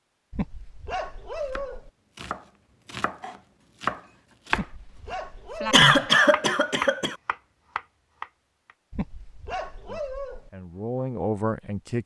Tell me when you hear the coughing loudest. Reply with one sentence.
The loudest moment of the coughing is at 6 seconds.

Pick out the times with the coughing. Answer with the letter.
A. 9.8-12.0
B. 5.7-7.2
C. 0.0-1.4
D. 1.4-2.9
B.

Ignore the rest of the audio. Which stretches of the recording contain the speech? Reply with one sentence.
The speech can be heard from 9.8 to 12.0 s.